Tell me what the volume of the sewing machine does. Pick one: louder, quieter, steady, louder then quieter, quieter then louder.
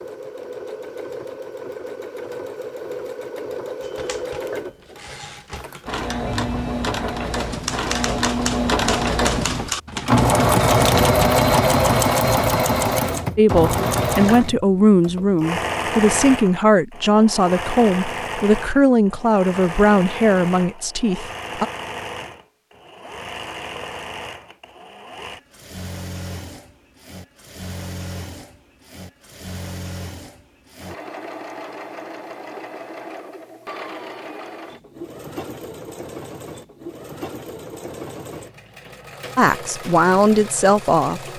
louder then quieter.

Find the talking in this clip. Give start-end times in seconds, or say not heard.
13.3-21.6, 39.4-41.2.